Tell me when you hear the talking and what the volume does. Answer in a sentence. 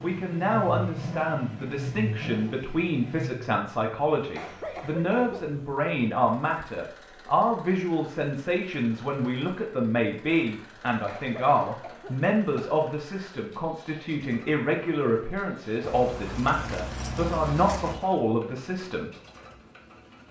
The talking can be heard from 0.0 to 19.1 s, at a steady volume.